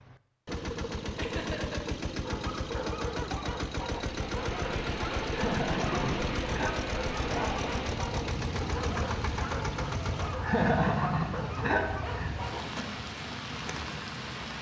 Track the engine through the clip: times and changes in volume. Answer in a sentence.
The engine can be heard from 0.0 to 10.4 s, at a steady volume.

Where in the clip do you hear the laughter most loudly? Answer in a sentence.
The loudest moment of the laughter is at 11 seconds.